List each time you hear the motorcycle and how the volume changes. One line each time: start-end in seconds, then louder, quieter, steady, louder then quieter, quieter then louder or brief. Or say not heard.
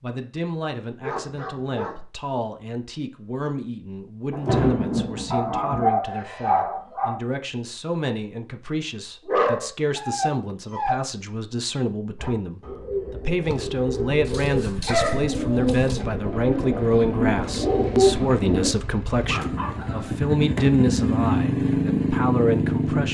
13.4-23.0 louder.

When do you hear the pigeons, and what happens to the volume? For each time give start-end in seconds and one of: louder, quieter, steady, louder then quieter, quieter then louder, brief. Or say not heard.
12.2-18.7 louder.